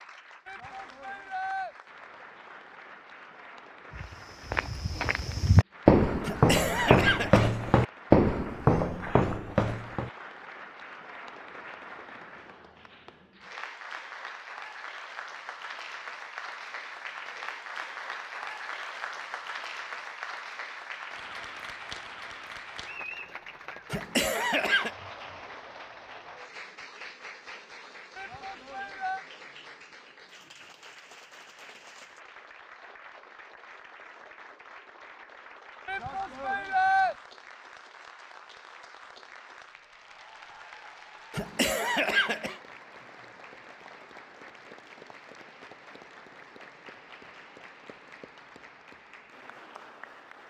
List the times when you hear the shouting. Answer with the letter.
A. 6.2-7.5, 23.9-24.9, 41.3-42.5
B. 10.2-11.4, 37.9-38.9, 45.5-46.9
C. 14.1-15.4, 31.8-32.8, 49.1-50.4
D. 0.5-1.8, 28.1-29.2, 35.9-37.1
D.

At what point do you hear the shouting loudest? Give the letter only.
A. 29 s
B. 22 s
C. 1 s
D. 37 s
D.